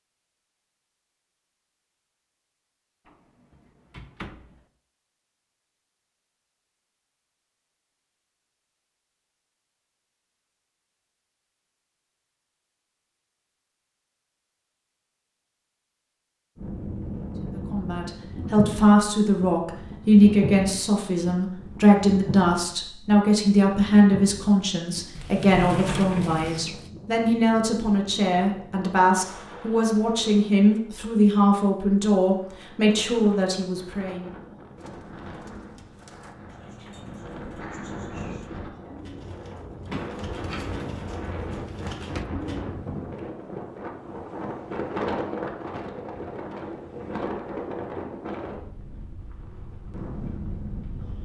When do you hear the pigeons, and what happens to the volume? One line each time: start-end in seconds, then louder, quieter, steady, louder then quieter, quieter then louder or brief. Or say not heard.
34.8-42.6 louder.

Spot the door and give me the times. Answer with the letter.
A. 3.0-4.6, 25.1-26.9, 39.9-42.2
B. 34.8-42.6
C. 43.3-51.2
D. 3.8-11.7
A.